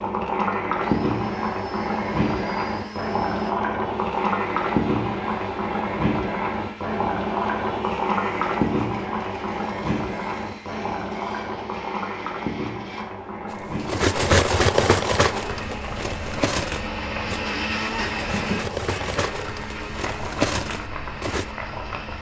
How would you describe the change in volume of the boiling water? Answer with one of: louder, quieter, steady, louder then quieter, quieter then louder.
quieter.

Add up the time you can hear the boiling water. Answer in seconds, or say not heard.
22 s.